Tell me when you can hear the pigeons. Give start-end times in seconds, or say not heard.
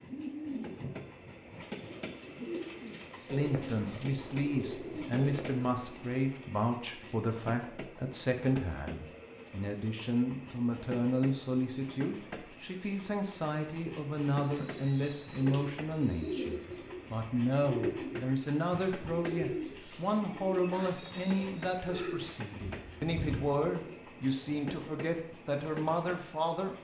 0.0-6.1, 14.4-24.0.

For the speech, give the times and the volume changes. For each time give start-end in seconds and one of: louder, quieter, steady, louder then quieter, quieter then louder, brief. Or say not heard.
3.1-26.7 steady.